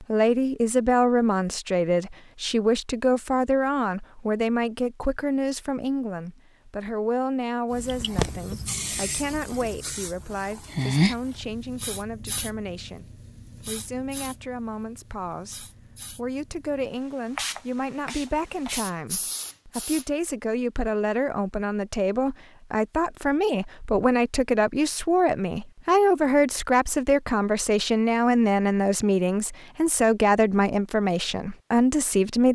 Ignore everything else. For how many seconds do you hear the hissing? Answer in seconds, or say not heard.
12 s.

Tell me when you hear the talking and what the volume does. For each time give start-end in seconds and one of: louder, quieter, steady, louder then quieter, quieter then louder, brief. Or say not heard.
0.0-32.5 quieter then louder.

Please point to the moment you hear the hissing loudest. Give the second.
11 s.